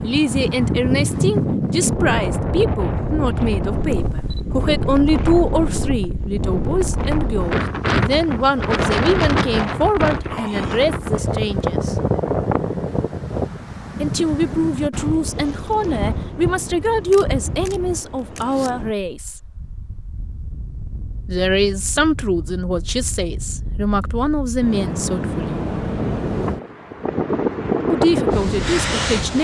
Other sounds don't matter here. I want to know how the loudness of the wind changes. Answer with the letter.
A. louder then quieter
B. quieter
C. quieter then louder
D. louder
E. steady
C.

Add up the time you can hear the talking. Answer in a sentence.
The talking can be heard for 23 seconds in total.